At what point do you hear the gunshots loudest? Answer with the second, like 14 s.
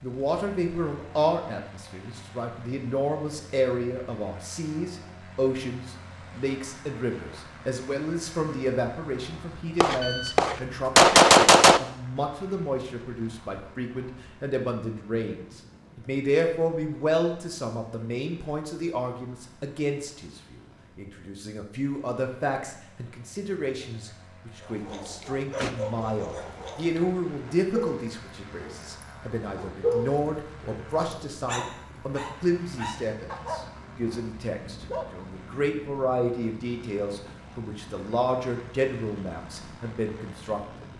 11 s.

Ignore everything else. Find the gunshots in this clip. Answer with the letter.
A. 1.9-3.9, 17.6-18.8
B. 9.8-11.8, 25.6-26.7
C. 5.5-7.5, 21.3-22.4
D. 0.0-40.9
B.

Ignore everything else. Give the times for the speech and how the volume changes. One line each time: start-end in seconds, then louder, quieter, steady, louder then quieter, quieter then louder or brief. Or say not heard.
0.0-40.9 steady.